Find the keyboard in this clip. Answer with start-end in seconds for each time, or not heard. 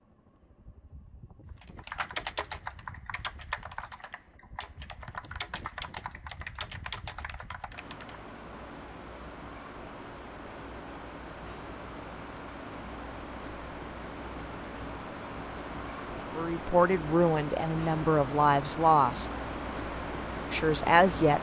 1.6-8.2.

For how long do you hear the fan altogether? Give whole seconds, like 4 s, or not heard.
21 s.